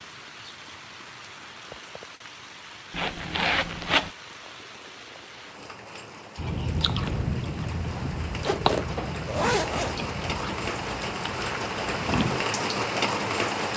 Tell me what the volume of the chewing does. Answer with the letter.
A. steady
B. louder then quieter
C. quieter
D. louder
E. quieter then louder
C.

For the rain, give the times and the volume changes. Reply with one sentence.
The rain can be heard from 0.0 to 13.7 s, getting louder.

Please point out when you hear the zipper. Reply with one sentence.
You can hear the zipper from 2.9 to 4.1 s and from 8.3 to 10.0 s.